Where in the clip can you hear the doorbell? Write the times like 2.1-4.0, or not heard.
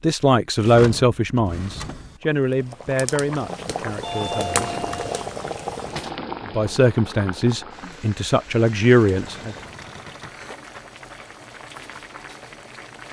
4.0-5.8.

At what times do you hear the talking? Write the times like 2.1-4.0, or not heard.
0.0-4.8, 6.5-9.6.